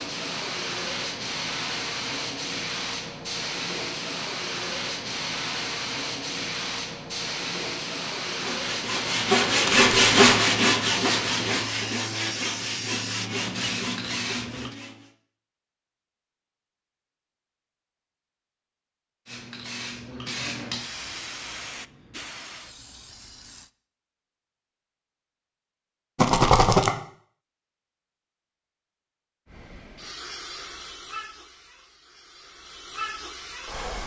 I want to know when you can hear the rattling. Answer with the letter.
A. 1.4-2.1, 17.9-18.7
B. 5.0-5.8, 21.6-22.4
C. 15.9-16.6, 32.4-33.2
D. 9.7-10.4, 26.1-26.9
D.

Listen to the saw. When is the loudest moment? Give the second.
10 s.